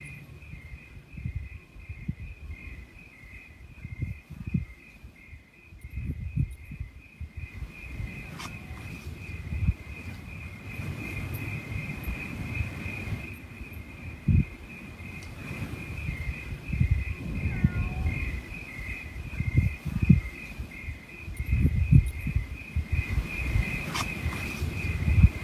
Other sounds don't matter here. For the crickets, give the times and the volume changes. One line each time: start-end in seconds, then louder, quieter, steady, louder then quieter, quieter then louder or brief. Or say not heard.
0.0-25.4 louder.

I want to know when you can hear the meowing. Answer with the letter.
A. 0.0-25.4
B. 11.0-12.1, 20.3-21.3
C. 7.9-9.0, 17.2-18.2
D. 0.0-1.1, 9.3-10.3
C.